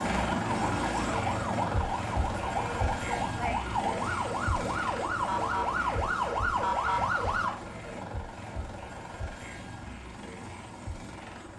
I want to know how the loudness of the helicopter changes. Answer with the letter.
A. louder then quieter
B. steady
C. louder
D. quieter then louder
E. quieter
E.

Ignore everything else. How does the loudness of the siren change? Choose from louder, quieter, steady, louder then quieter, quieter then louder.
louder.